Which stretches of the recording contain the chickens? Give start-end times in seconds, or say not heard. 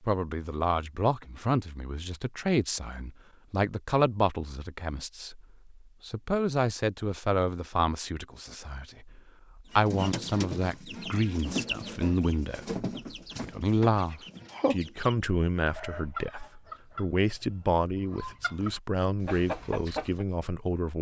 9.7-20.2.